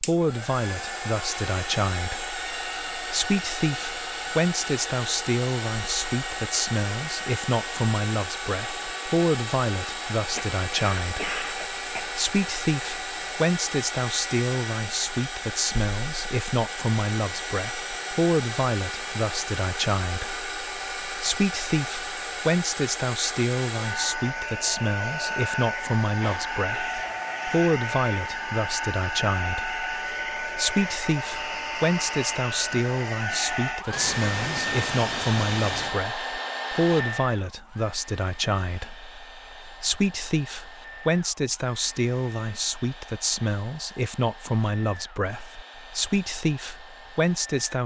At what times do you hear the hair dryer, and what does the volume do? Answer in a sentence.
The hair dryer can be heard from 0.0 to 47.8 s, getting quieter.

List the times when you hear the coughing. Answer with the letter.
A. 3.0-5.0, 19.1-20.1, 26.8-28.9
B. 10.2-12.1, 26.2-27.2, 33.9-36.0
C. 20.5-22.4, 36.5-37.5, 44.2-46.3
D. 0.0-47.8
B.